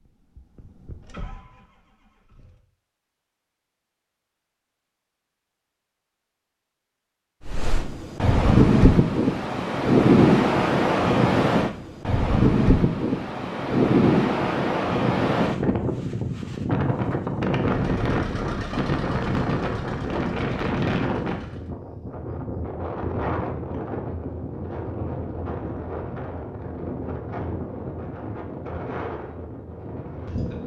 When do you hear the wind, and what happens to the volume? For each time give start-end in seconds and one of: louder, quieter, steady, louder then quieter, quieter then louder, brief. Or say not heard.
7.5-30.6 quieter.